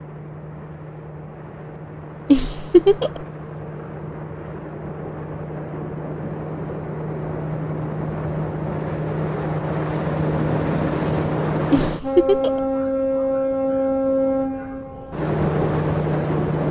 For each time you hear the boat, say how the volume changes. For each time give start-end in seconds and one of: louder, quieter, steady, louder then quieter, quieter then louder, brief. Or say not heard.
0.0-16.6 louder.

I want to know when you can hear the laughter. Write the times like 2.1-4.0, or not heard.
2.3-3.2, 11.7-12.6.